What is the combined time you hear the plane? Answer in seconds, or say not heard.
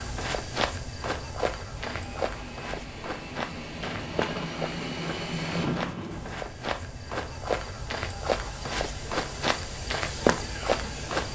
4 s.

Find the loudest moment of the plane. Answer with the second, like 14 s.
5 s.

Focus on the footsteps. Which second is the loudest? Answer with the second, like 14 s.
10 s.